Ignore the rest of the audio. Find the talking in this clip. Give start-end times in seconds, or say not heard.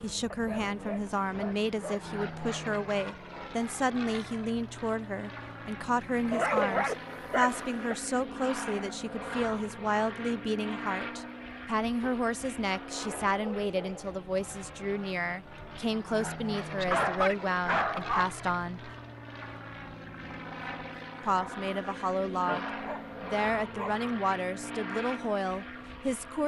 0.0-18.9, 21.2-26.4.